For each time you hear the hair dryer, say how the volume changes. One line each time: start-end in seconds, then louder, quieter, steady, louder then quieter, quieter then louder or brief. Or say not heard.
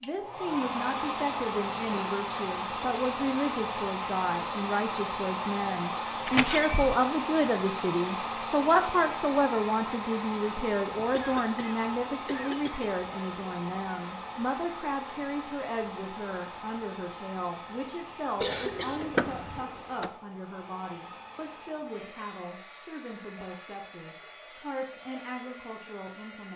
0.0-26.5 quieter.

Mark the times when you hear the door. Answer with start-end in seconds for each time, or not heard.
6.2-7.0, 18.9-20.1.